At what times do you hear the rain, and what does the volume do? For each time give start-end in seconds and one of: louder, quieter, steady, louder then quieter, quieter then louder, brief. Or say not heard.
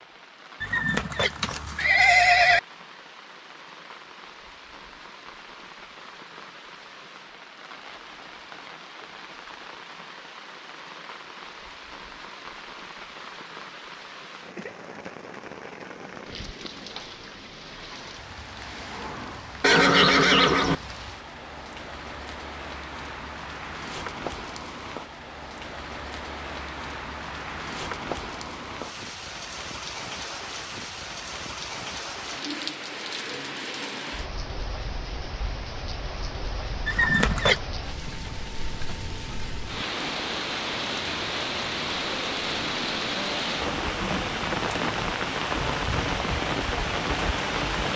0.0-47.9 louder.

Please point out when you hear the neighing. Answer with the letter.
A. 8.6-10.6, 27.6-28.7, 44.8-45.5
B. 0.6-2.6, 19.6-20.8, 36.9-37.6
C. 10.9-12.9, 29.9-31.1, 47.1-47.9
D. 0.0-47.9
B.